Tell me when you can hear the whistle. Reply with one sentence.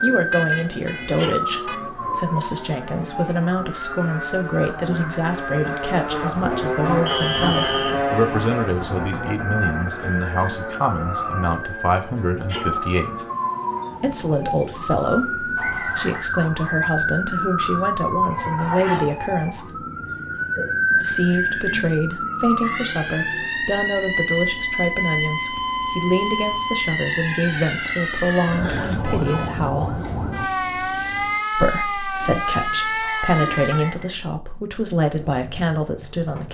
The whistle can be heard from 7.0 to 8.0 s, from 15.6 to 16.2 s and from 33.0 to 34.2 s.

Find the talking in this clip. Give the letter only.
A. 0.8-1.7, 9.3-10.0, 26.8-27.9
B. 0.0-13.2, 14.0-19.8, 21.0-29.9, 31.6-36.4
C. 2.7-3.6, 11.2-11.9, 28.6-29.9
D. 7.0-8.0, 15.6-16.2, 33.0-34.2
B.